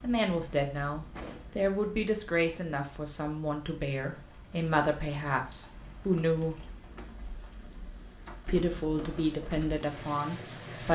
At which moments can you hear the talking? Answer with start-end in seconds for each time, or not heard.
0.0-6.6, 8.4-10.9.